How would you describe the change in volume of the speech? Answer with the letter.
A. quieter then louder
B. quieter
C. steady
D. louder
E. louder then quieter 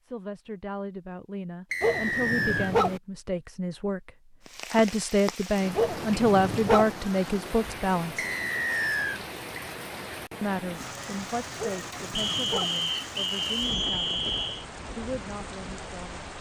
E.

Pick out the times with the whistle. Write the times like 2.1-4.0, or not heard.
1.7-2.8, 8.2-9.2, 12.2-14.7.